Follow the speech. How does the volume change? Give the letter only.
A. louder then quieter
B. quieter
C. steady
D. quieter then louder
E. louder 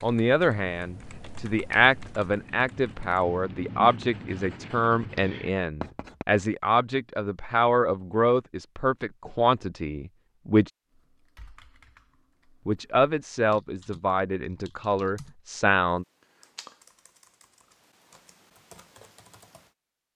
C.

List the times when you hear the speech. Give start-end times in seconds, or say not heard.
0.0-10.7, 12.7-16.1.